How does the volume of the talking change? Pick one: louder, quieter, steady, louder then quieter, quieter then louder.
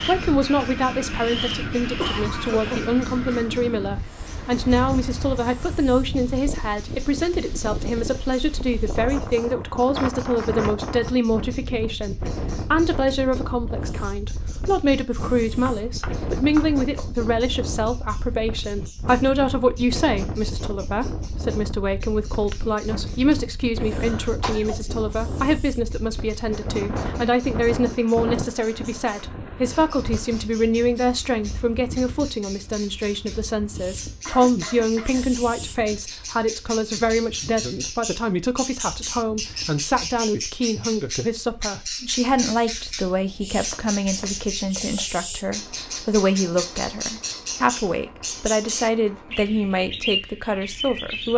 steady.